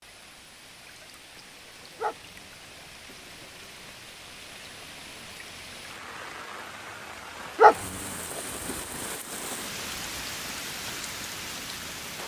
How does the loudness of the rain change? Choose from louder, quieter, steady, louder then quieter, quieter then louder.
louder.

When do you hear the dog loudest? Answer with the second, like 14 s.
8 s.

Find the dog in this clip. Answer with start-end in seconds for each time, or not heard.
1.9-3.5, 7.5-8.8.